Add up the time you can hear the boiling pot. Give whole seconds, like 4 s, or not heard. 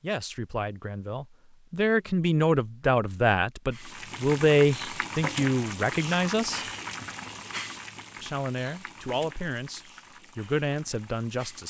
8 s.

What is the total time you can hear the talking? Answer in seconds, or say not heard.
10 s.